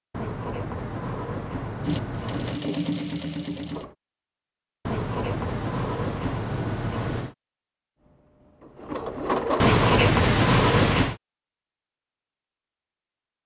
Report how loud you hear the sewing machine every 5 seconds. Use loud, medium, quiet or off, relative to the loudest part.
loud, loud, off.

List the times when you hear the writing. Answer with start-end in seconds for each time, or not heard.
0.1-2.6, 4.8-7.3, 9.6-11.2.